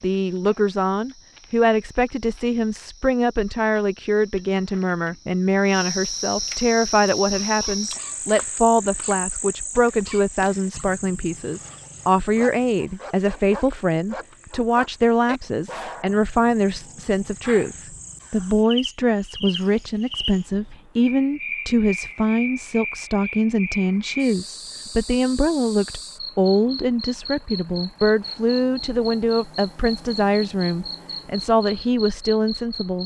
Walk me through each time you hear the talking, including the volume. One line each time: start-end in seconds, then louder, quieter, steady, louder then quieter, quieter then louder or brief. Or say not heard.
0.0-33.0 steady.